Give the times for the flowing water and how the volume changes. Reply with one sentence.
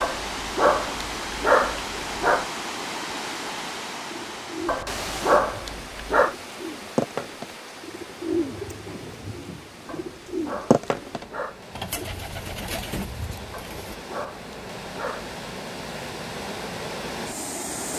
You can hear the flowing water from 0.0 to 17.9 s, getting quieter then louder.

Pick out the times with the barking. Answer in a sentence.
You can hear the barking from 0.0 to 2.5 s, from 4.7 to 6.3 s, from 9.8 to 11.6 s and from 13.5 to 15.3 s.